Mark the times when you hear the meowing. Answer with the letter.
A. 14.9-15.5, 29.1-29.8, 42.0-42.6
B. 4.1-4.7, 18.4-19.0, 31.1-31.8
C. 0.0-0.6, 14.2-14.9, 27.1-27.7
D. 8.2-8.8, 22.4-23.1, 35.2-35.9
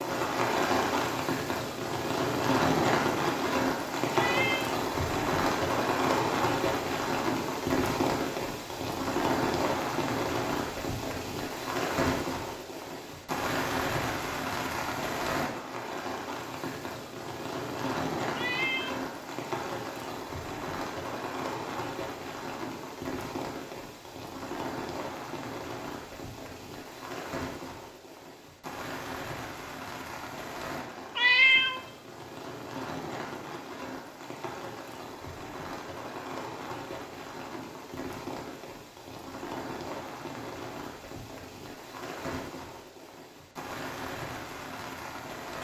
B.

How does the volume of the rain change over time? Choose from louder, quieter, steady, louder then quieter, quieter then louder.
quieter.